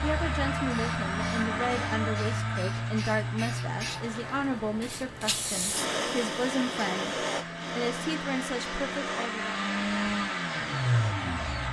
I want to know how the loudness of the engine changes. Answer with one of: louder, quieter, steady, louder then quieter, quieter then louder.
quieter then louder.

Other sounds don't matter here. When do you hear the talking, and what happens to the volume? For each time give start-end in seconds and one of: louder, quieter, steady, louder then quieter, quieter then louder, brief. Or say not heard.
0.0-9.6 steady.